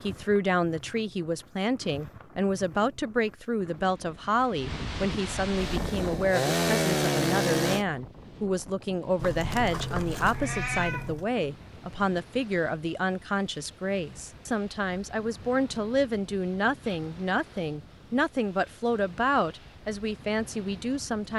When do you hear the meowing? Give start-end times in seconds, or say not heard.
9.2-11.3.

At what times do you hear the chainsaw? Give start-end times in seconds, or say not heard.
5.5-7.8.